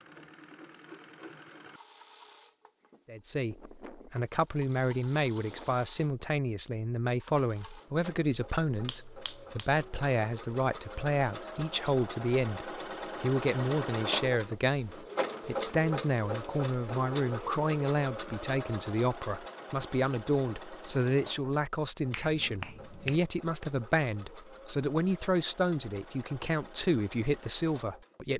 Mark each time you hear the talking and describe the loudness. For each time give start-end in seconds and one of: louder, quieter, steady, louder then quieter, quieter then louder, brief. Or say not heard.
3.0-28.3 steady.